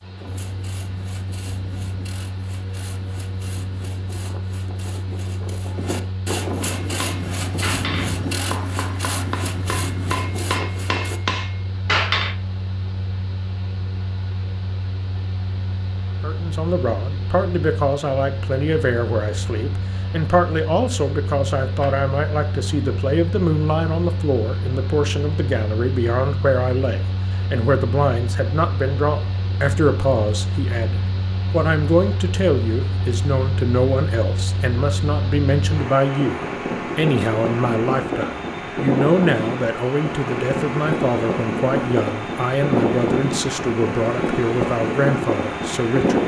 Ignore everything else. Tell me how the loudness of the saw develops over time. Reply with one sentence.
The volume of the saw goes up.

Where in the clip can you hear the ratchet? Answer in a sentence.
The ratchet can't be heard in this clip.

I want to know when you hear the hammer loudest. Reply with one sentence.
The volume of the hammer peaks at 12 seconds.